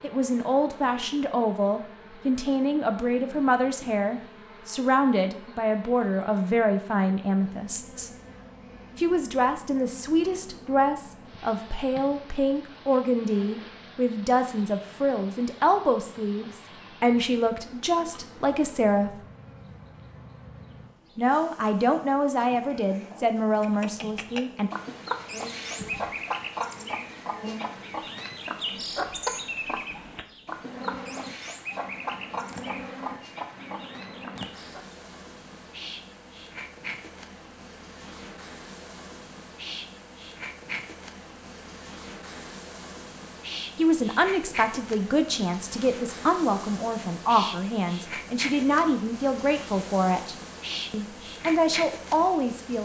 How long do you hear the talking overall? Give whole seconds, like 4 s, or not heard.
31 s.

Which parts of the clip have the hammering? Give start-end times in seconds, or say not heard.
not heard.